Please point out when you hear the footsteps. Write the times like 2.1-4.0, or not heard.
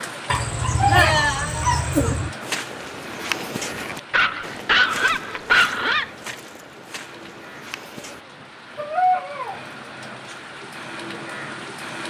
2.4-8.2.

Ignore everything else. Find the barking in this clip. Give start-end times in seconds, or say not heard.
0.3-2.3, 4.1-6.0, 8.8-9.6.